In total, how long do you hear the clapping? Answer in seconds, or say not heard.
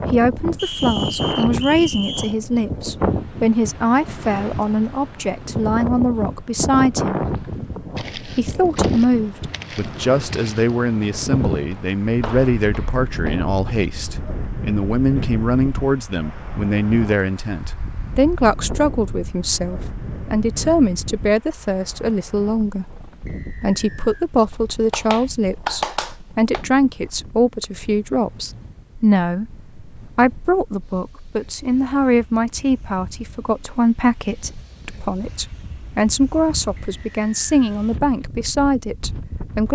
2 s.